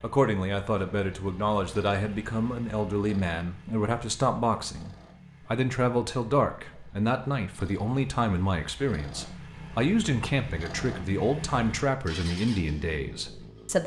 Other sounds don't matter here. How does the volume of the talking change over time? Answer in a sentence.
The loudness of the talking stays about the same.